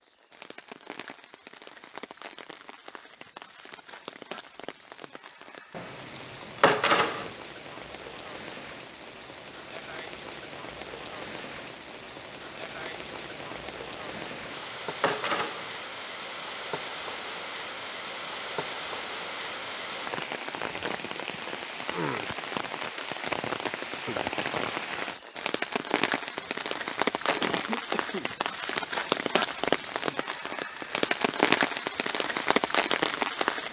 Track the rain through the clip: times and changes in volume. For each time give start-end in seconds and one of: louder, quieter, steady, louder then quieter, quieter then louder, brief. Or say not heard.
0.0-33.6 louder.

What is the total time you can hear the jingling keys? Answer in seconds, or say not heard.
4 s.